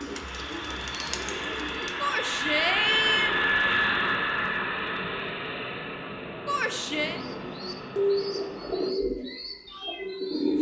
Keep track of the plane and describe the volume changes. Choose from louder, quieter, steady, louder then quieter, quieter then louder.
louder then quieter.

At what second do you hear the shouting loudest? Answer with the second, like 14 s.
3 s.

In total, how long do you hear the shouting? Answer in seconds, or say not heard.
2 s.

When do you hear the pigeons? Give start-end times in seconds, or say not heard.
0.0-2.0, 7.1-10.5.